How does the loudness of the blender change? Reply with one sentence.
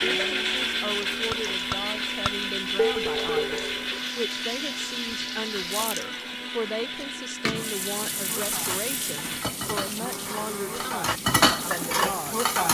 The volume of the blender goes down.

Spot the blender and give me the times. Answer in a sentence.
The blender can be heard from 0.0 to 12.6 s.